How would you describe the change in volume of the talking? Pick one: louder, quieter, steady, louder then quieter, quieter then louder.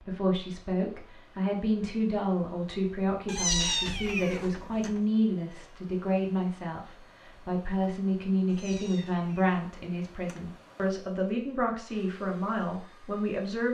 steady.